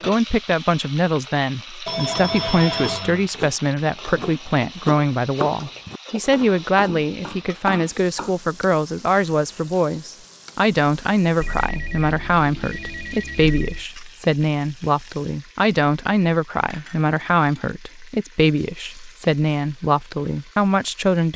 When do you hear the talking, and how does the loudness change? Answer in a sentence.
The talking can be heard from 0.0 to 21.3 s, at a steady volume.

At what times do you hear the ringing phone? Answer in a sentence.
The ringing phone can be heard from 1.9 to 3.1 s and from 11.4 to 13.8 s.